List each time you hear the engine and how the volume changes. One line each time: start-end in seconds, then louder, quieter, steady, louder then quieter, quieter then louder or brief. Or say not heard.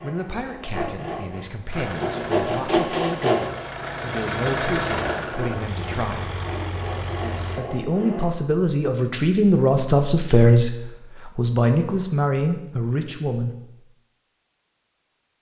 1.6-7.7 louder then quieter.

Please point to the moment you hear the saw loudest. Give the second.
3 s.